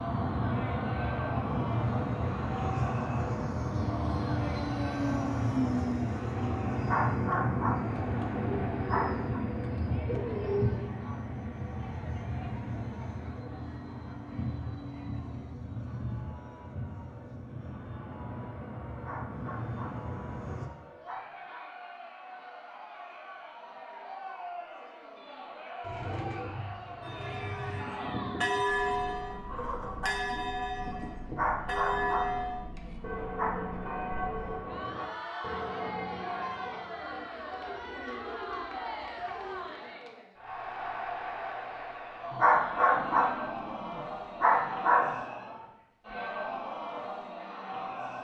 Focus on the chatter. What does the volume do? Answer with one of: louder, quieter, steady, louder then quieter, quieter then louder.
quieter then louder.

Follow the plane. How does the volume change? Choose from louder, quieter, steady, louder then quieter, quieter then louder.
quieter.